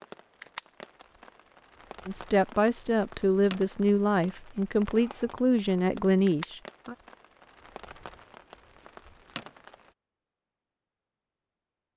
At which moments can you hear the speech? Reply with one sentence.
You can hear the speech from 2.0 to 7.0 s.